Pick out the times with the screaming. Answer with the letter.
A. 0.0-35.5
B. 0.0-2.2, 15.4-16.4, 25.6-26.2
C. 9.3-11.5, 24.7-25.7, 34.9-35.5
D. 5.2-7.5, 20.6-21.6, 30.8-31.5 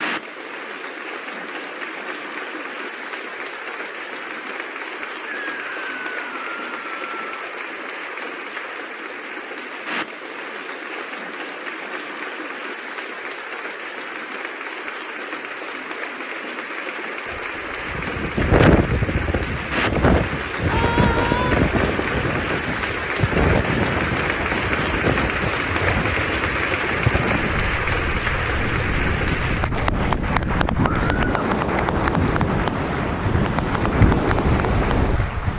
D.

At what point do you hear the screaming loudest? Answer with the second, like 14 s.
21 s.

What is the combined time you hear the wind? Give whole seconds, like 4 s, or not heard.
18 s.